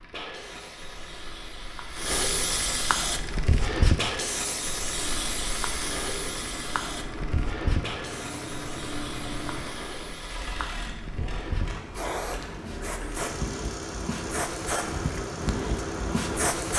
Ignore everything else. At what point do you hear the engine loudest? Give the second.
9 s.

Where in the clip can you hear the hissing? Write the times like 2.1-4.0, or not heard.
0.0-16.7.